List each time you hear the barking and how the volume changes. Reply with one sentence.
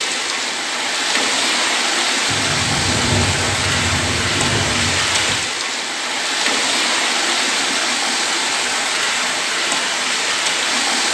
You can't hear the barking here.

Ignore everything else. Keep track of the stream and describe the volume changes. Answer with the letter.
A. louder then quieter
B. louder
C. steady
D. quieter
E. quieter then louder
C.